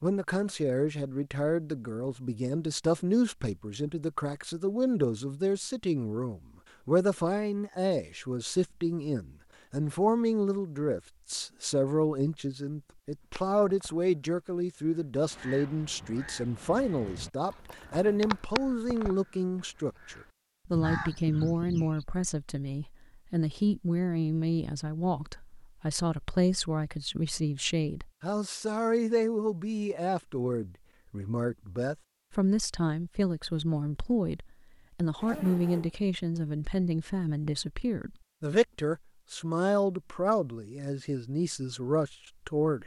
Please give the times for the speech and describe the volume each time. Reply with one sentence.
The speech can be heard from 0.0 to 42.8 s, at a steady volume.